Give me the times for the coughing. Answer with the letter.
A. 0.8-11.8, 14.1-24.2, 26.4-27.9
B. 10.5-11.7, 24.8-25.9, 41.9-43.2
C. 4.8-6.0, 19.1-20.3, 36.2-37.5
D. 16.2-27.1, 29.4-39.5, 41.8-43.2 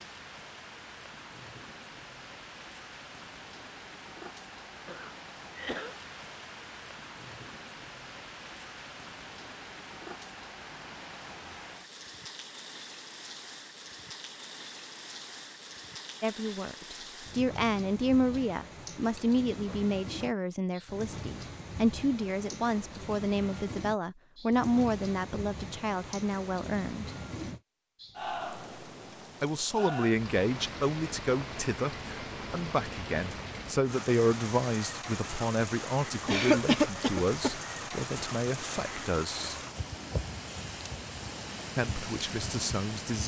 C.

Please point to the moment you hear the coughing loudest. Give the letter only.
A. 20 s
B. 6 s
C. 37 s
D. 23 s
C.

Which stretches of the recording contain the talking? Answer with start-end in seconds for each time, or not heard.
16.2-27.1, 29.4-39.5, 41.8-43.2.